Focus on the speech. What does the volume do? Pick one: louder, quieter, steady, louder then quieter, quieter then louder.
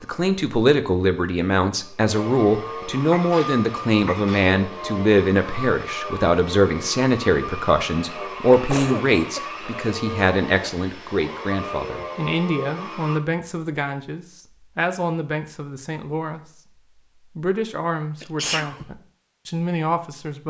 quieter.